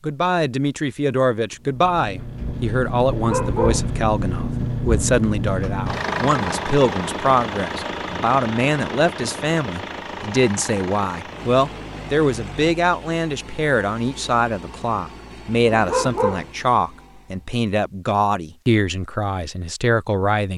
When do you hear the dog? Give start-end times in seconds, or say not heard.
3.1-3.9, 15.7-16.5.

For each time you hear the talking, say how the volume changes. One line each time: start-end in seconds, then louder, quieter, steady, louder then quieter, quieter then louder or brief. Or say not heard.
0.0-20.5 steady.